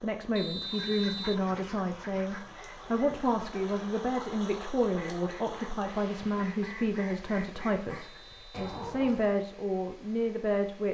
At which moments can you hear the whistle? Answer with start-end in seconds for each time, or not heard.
0.3-1.4, 8.0-8.8.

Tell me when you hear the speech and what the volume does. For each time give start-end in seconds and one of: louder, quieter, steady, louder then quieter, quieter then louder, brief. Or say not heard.
0.0-10.8 steady.